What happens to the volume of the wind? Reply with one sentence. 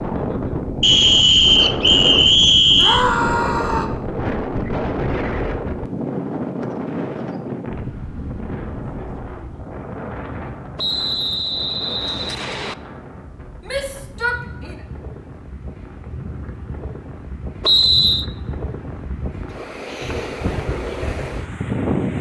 The volume of the wind goes down, then up.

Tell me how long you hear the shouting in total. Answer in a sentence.
You can hear the shouting for 2 seconds altogether.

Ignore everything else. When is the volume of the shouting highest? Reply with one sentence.
The volume of the shouting peaks at 3 seconds.